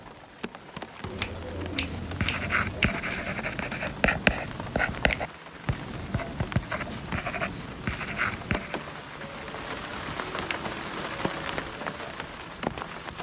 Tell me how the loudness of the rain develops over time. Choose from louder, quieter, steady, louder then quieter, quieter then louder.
louder.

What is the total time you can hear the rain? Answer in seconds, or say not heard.
13 s.